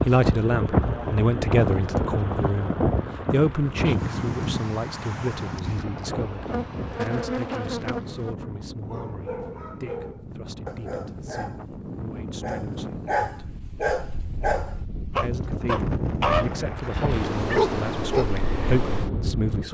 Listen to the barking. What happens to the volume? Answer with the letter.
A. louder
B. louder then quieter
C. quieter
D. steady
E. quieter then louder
A.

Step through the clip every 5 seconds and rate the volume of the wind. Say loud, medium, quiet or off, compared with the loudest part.
loud, medium, medium, loud.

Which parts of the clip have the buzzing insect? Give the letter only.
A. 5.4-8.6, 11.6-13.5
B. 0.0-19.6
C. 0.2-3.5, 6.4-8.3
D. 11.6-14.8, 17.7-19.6
C.